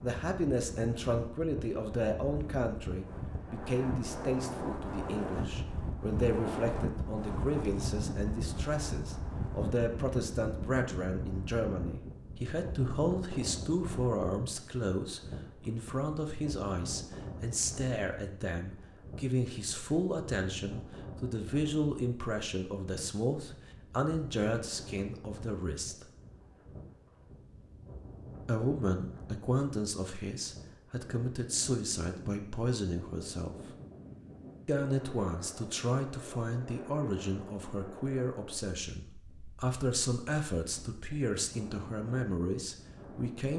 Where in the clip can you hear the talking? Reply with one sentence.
You can hear the talking from 0.0 to 26.1 s, from 28.4 to 33.8 s and from 34.6 to 43.5 s.